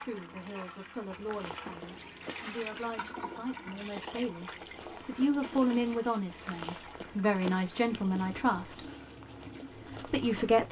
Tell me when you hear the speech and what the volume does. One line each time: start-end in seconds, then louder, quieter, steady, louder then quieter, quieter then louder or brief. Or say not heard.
0.0-8.8 louder
9.9-10.6 brief.